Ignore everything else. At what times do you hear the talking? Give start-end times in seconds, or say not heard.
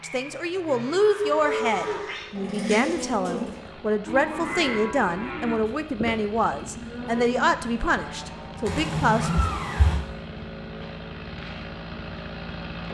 0.0-9.4.